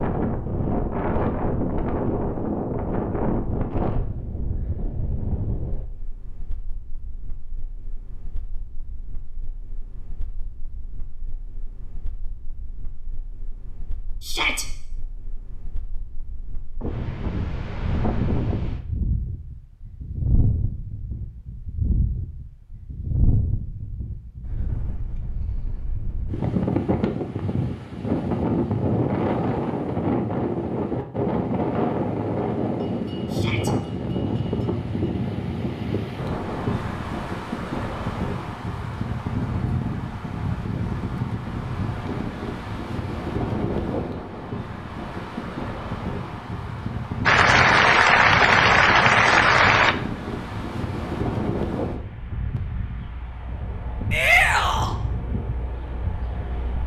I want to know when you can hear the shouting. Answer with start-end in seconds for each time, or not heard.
14.2-14.7, 33.3-33.7, 54.1-55.0.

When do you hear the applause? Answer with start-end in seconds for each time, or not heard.
47.2-50.0.